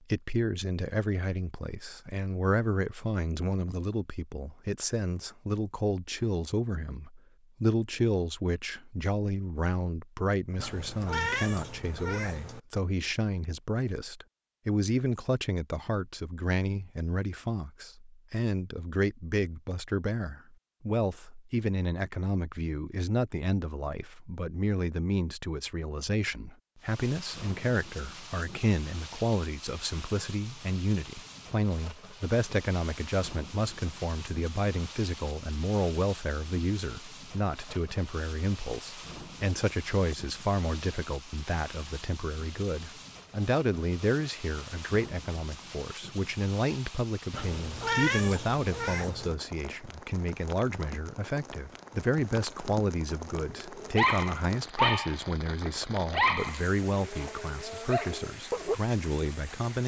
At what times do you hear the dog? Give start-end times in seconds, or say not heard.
53.5-58.8.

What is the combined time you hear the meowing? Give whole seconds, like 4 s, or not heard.
4 s.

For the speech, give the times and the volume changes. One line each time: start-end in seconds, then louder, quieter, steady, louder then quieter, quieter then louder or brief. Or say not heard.
0.1-59.8 steady.